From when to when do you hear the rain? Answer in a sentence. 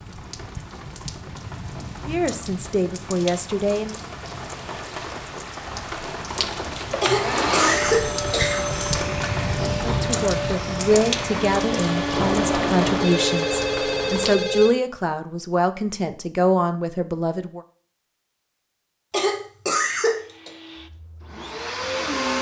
The rain can be heard from 0.0 to 14.4 s.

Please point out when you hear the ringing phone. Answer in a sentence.
The ringing phone can be heard from 7.9 to 9.2 s and from 12.1 to 14.8 s.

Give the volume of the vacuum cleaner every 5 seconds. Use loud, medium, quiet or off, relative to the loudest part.
off, loud, loud, off, loud.